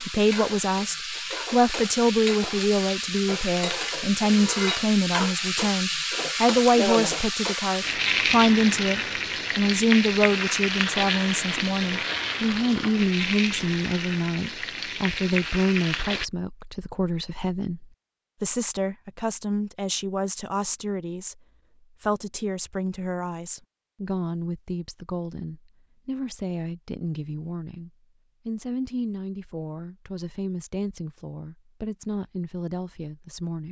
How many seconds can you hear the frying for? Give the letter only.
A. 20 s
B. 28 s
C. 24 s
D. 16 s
D.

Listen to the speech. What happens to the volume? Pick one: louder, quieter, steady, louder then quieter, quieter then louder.
quieter.